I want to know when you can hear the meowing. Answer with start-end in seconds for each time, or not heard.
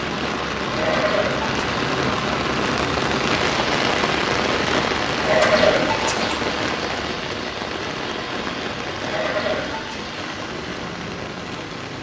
not heard.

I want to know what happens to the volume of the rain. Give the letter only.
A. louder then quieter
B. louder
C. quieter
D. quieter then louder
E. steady
C.